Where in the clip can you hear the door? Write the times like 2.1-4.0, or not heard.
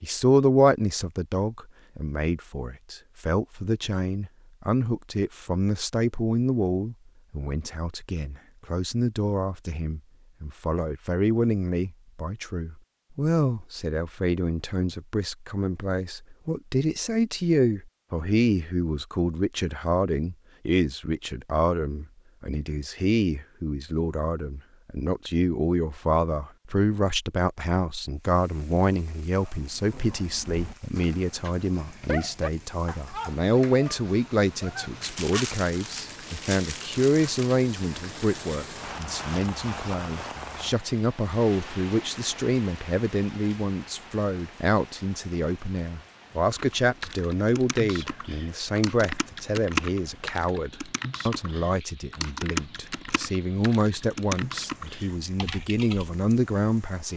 not heard.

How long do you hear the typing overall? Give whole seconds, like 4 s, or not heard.
10 s.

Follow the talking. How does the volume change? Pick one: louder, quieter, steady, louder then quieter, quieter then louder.
steady.